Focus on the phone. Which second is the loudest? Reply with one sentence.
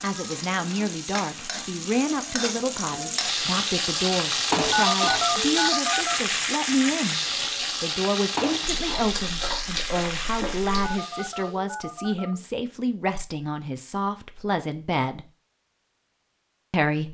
The volume of the phone peaks at 5 seconds.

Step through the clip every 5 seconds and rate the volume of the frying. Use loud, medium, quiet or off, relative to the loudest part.
loud, loud, medium, off.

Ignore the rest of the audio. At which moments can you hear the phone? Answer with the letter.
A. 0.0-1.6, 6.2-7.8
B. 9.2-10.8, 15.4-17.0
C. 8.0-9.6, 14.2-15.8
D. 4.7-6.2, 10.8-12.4
D.